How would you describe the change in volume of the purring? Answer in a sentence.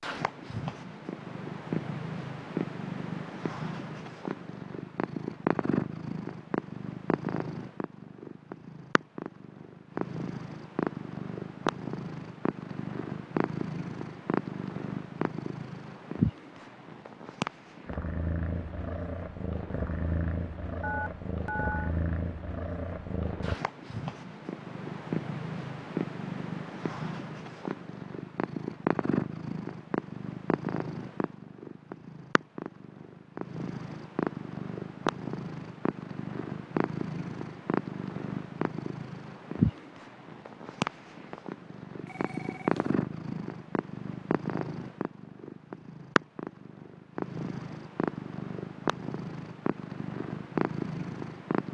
The volume of the purring stays about the same.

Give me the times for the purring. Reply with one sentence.
You can hear the purring from 0.0 to 51.6 s.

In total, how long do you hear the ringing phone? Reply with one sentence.
You can hear the ringing phone for 2 seconds altogether.